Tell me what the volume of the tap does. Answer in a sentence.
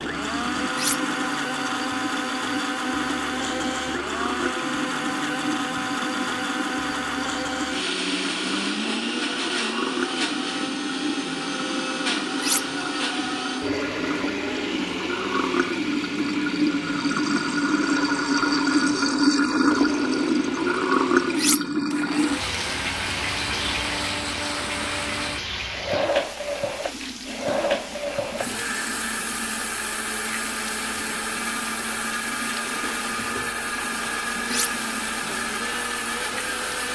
The loudness of the tap goes up, then down.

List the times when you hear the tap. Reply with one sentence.
You can hear the tap from 0.0 to 36.8 s.